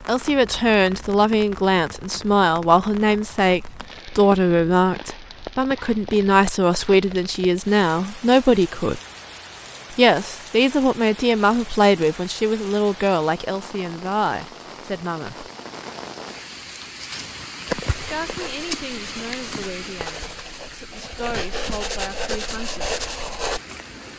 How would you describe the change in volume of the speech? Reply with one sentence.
The loudness of the speech goes down.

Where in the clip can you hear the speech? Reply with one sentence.
The speech can be heard from 0.1 to 9.0 s, from 9.9 to 15.5 s and from 17.9 to 22.8 s.